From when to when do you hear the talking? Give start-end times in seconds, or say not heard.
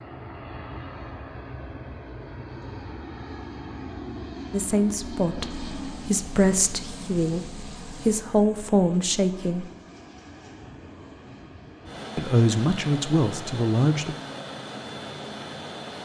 4.5-9.7, 12.2-14.2.